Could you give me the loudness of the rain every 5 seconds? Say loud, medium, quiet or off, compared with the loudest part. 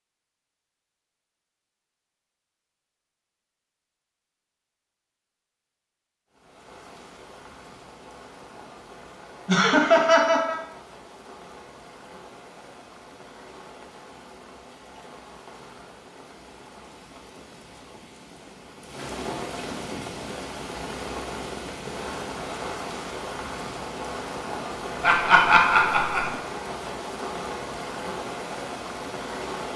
off, quiet, quiet, medium, loud, loud.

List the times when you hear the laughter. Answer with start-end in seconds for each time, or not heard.
9.4-10.6, 25.0-26.3.